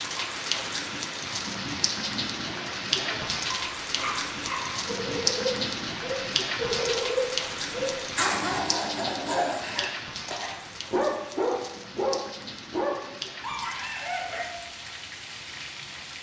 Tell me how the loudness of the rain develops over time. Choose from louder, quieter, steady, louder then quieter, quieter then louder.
quieter.